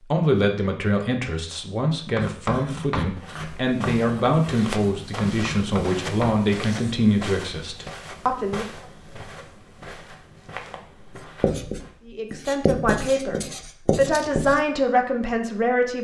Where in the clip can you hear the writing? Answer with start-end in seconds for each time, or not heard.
1.9-7.0, 11.4-14.6.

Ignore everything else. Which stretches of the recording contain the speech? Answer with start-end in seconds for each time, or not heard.
0.1-8.7, 12.1-16.0.